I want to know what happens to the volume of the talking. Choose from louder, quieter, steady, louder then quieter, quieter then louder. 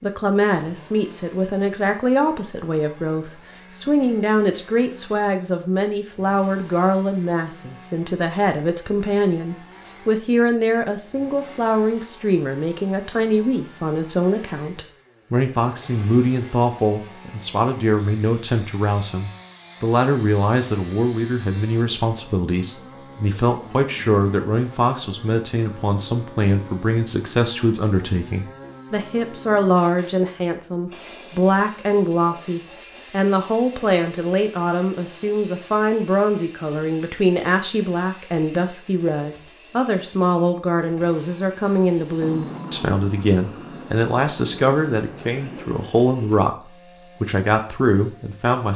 steady.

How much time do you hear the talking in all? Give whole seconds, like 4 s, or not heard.
49 s.